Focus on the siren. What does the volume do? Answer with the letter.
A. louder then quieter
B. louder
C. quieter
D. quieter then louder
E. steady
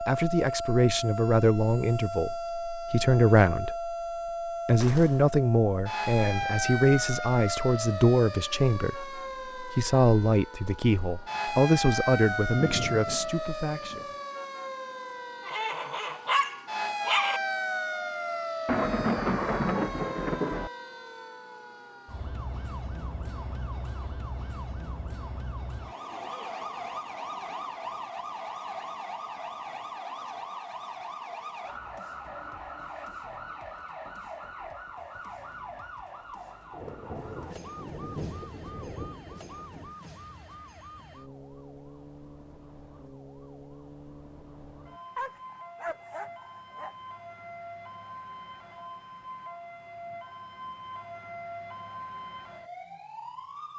C.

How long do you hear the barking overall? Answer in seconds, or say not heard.
4 s.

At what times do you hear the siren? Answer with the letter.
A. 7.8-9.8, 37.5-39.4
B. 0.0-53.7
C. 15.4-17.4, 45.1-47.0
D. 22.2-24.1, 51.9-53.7
B.